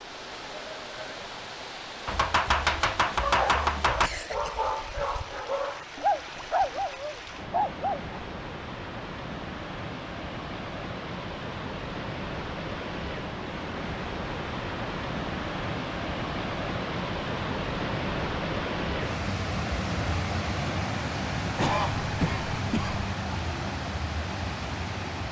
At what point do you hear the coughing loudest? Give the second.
22 s.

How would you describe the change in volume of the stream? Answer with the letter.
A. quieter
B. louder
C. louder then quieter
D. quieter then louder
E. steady
B.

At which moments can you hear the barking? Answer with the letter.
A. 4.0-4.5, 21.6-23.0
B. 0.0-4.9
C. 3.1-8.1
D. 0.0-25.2
C.